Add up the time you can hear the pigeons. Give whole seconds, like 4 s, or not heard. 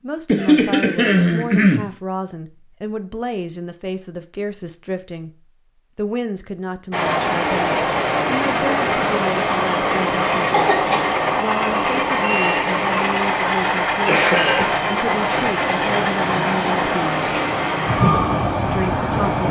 not heard.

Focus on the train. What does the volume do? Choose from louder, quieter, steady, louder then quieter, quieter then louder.
steady.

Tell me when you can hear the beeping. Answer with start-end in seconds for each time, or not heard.
11.7-12.7.